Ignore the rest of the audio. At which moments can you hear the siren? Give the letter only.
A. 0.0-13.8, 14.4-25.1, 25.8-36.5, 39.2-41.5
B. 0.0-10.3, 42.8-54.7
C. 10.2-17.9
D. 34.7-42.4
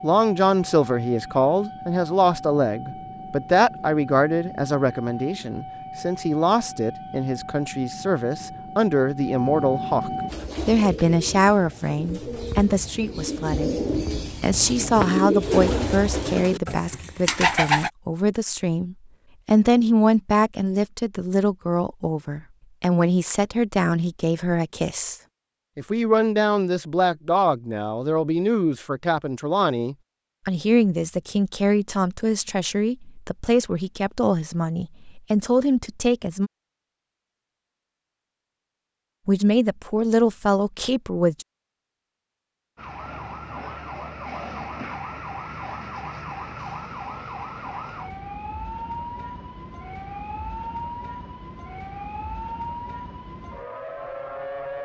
B.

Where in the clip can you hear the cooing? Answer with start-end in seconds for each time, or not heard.
10.2-17.9.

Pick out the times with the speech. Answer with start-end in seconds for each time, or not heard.
0.0-13.8, 14.4-25.1, 25.8-36.5, 39.2-41.5.